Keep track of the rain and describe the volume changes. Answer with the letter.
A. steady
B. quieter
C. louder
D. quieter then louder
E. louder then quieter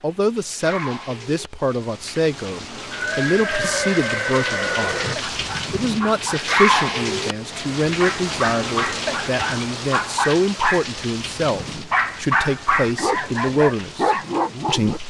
E.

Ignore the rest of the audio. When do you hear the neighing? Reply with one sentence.
You can hear the neighing from 2.9 to 5.2 s.